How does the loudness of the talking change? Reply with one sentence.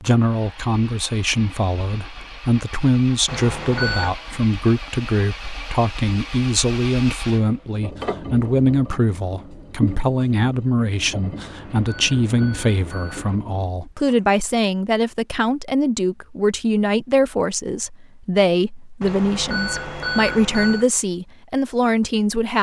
The volume of the talking stays about the same.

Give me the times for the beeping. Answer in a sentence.
The beeping can be heard from 3.2 to 4.2 s, from 11.3 to 13.4 s and from 19.0 to 20.9 s.